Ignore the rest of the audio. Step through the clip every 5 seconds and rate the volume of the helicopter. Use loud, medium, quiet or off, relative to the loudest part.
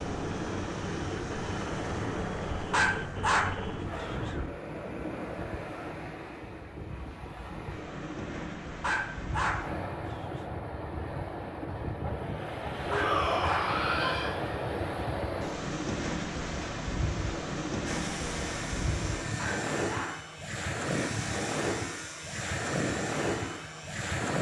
loud, off, off, loud, loud.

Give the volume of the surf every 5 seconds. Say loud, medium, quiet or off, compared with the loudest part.
loud, medium, loud, loud, loud.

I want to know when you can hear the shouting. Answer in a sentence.
The shouting can be heard from 12.8 to 14.4 s.